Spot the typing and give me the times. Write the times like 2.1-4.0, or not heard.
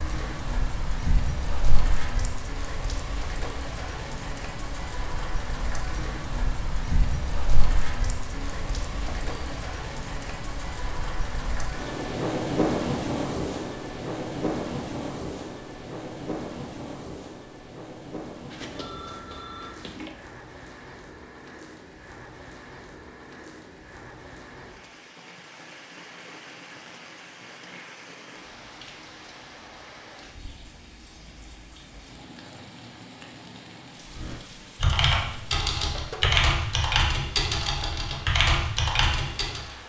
34.1-39.8.